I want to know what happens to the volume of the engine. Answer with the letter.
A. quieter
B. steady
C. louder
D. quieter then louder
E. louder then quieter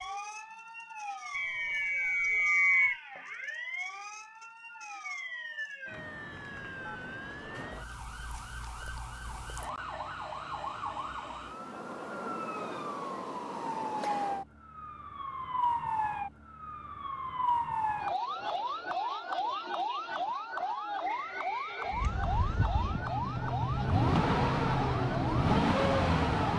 C.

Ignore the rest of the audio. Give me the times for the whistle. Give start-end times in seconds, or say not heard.
1.3-3.0, 21.0-22.6.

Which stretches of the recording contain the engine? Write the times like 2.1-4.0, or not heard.
21.9-26.5.